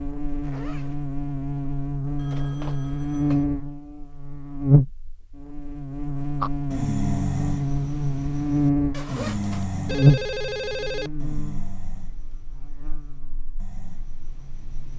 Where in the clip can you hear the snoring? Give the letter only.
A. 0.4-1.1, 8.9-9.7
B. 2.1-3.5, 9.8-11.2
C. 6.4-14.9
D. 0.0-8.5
C.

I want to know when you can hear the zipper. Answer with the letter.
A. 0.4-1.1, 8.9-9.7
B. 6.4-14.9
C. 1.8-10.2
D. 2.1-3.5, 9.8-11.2
A.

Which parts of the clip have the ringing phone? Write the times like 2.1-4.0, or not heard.
2.1-3.5, 9.8-11.2.